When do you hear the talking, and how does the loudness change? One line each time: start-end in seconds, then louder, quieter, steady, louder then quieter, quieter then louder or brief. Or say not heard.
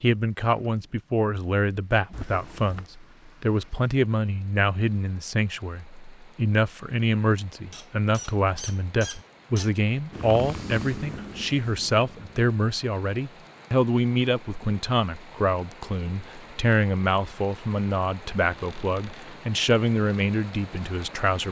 0.0-21.4 steady.